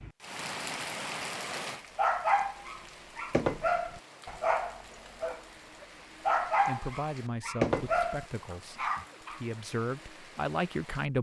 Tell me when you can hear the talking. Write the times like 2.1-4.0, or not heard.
6.5-11.1.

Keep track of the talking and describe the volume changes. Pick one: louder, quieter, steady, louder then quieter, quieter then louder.
quieter then louder.